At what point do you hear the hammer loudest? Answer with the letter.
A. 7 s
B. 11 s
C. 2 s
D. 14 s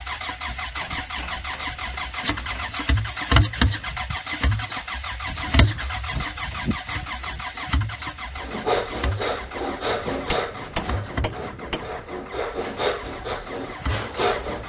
B.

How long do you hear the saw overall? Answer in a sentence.
You can hear the saw for 6 seconds altogether.